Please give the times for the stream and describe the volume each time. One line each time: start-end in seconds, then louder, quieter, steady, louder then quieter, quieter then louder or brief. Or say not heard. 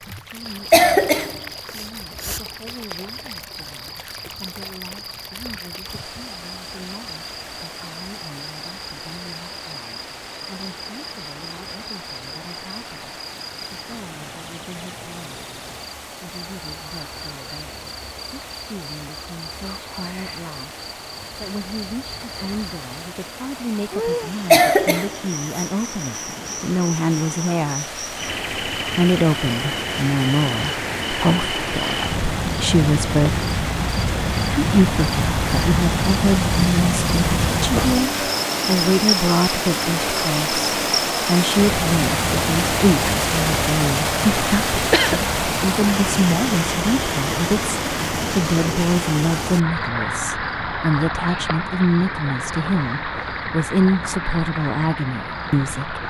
0.0-56.0 louder.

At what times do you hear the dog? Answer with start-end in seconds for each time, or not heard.
not heard.